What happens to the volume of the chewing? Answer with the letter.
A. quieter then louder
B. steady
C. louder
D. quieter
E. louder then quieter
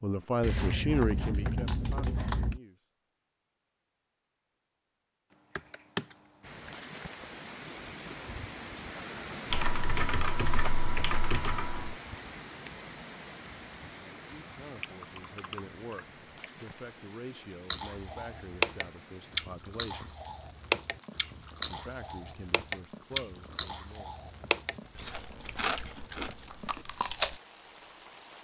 D.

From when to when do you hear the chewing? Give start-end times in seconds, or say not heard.
17.7-27.4.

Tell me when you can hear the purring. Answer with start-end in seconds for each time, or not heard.
not heard.